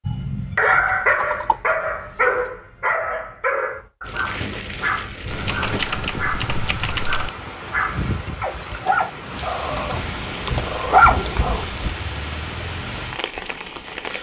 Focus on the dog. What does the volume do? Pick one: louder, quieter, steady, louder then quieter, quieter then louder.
quieter then louder.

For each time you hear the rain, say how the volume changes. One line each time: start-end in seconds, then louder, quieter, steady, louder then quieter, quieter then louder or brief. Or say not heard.
4.0-14.1 steady.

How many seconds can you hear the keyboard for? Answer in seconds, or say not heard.
5 s.